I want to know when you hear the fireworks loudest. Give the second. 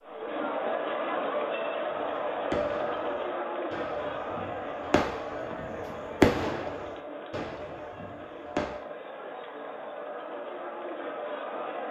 6 s.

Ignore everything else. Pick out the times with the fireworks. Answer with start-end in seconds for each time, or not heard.
1.9-8.8.